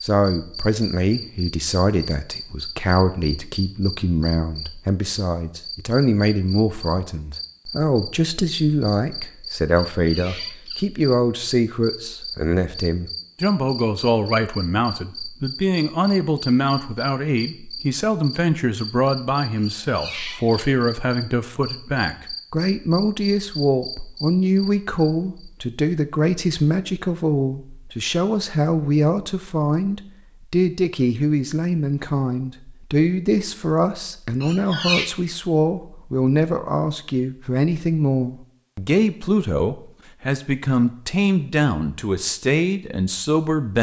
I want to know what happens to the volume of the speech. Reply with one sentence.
The volume of the speech stays about the same.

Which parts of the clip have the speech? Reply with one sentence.
The speech can be heard from 0.0 to 43.7 s.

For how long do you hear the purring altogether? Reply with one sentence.
You can't hear the purring here.